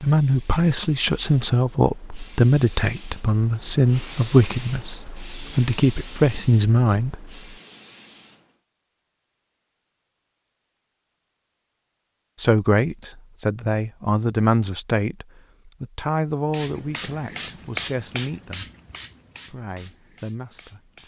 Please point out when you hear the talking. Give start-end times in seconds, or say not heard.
0.0-7.3, 12.4-18.6, 19.4-21.0.